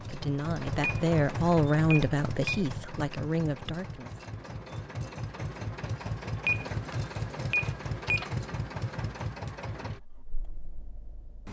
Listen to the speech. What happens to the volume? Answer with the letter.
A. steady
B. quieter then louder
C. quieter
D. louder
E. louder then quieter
E.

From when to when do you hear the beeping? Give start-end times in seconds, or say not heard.
0.8-2.6, 6.5-8.2.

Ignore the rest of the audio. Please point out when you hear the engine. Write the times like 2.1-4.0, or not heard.
0.0-11.4.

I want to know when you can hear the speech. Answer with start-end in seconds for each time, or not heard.
0.0-4.2.